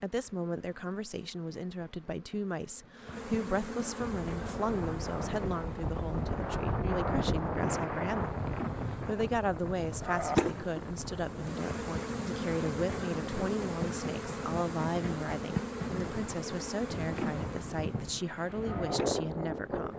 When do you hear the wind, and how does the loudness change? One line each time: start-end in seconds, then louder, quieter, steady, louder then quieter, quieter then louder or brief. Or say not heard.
4.0-19.9 quieter then louder.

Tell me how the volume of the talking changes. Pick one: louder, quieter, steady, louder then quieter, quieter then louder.
steady.